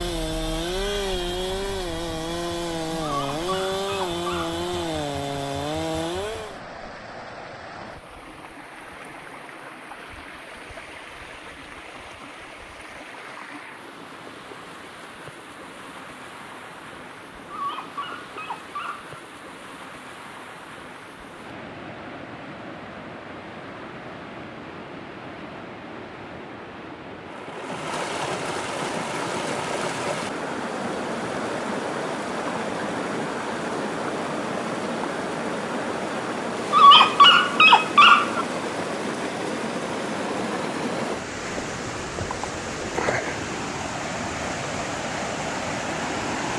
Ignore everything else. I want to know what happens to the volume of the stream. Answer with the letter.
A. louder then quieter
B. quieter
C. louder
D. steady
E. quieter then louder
C.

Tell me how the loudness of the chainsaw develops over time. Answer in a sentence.
The loudness of the chainsaw stays about the same.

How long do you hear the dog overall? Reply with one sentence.
The dog can be heard for 5 seconds in total.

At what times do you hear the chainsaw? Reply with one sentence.
You can hear the chainsaw from 0.0 to 6.6 s.